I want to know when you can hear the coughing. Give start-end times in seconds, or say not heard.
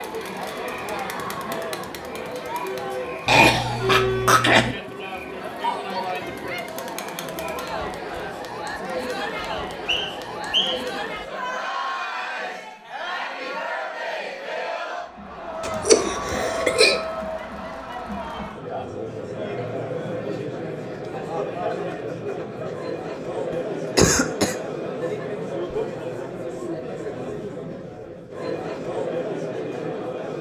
3.2-4.8, 15.6-17.0, 23.5-24.6.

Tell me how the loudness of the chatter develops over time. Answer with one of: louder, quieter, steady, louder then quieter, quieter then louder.
steady.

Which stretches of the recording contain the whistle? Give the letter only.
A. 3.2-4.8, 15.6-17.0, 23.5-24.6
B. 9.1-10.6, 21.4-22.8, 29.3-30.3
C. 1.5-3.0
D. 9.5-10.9
D.